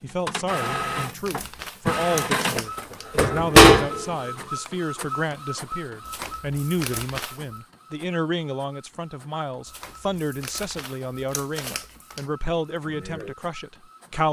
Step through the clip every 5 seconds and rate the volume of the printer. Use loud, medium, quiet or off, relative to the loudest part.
loud, quiet, quiet.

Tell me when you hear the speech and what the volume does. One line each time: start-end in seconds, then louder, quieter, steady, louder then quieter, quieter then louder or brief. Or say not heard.
0.0-14.2 steady.